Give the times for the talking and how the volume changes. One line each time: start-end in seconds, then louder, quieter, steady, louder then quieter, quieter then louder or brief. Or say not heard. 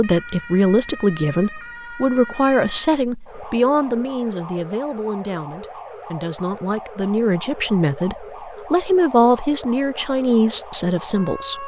0.0-11.6 quieter then louder.